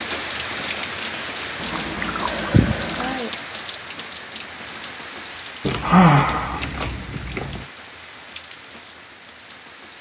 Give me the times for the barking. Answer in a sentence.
You can't hear the barking here.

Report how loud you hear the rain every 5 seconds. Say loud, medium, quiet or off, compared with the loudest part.
loud, medium.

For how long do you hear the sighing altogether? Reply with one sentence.
You can hear the sighing for 4 seconds altogether.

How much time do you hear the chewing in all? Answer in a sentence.
You can hear the chewing for 4 seconds altogether.